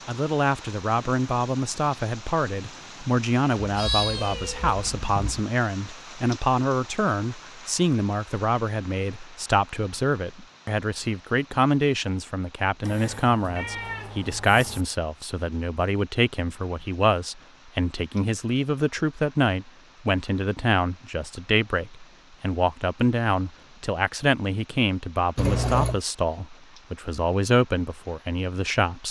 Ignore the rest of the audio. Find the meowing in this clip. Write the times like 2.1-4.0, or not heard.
3.5-5.5, 12.8-14.8, 25.4-26.0.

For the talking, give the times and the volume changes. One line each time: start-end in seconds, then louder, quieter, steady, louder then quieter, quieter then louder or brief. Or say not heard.
0.1-29.0 steady.